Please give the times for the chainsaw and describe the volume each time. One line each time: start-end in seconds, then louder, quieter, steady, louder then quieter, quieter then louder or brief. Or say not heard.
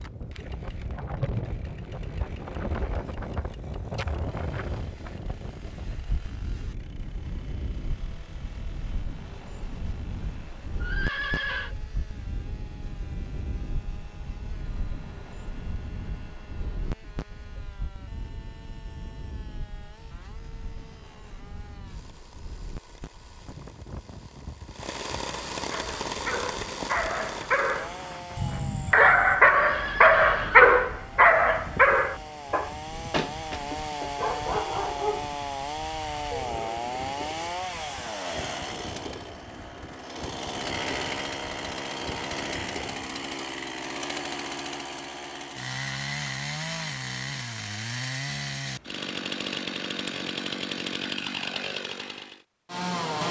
0.0-53.2 louder.